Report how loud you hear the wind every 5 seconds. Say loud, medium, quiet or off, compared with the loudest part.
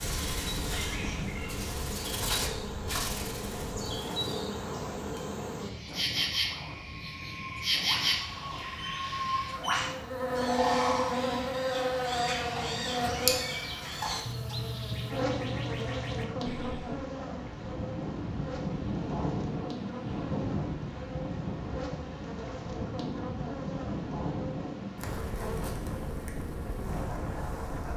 medium, medium, medium, loud, loud, loud.